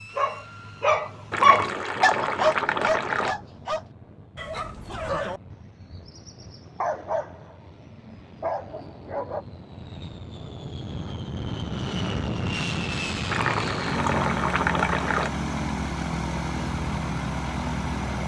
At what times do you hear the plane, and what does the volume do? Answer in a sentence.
The plane can be heard from 0.0 to 18.2 s, getting louder.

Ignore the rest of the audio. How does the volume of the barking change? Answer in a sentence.
The volume of the barking goes down.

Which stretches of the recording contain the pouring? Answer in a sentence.
The pouring can be heard from 1.3 to 3.4 s and from 13.2 to 15.3 s.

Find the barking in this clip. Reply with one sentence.
The barking can be heard from 0.0 to 9.4 s.